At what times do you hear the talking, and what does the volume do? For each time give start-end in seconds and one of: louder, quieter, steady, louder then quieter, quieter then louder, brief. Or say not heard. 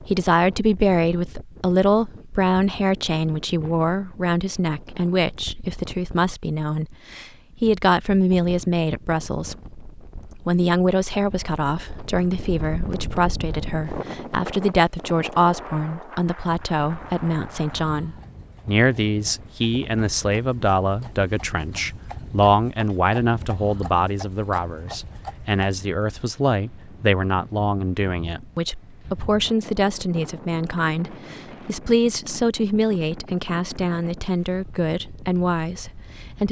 0.1-36.4 steady.